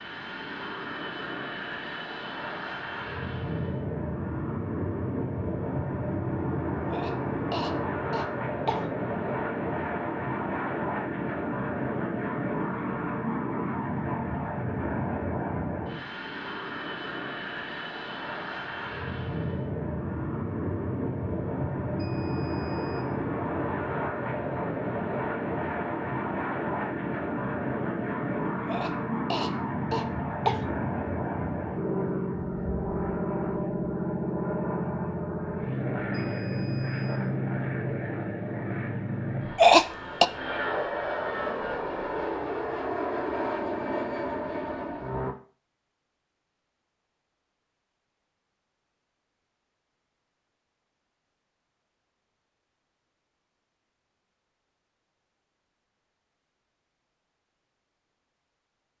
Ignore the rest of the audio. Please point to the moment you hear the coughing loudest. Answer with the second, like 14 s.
40 s.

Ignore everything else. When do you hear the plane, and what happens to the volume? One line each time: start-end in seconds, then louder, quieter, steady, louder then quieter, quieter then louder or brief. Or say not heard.
0.0-45.4 steady.